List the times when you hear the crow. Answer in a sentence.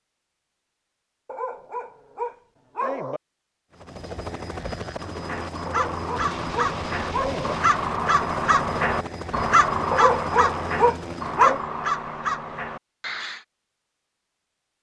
The crow can be heard from 5.0 to 13.4 s.